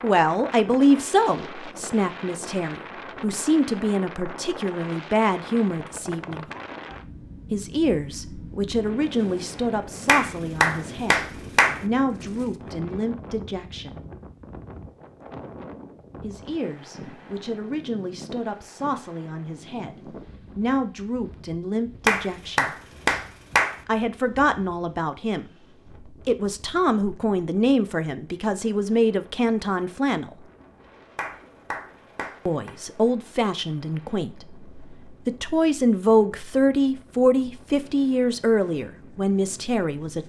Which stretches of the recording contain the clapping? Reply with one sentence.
The clapping can be heard from 10.1 to 11.8 s, from 22.1 to 23.8 s and from 31.1 to 32.7 s.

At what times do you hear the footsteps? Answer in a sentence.
You can't hear the footsteps here.